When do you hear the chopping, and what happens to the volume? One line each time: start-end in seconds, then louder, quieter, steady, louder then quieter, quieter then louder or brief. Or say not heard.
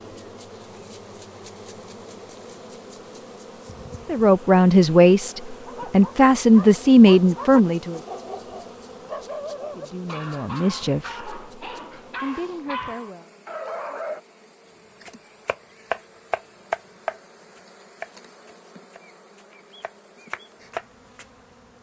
15.1-21.2 quieter then louder.